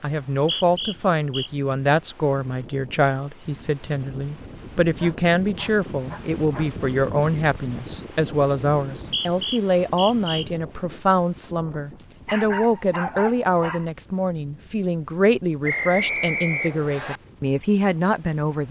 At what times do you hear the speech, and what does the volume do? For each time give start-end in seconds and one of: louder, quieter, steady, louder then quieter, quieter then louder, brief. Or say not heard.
0.0-18.6 steady.